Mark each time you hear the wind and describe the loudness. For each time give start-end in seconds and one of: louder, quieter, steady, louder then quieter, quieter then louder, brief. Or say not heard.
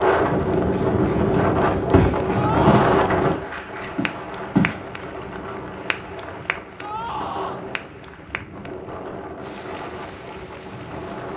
0.0-11.3 quieter.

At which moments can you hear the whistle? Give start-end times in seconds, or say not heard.
not heard.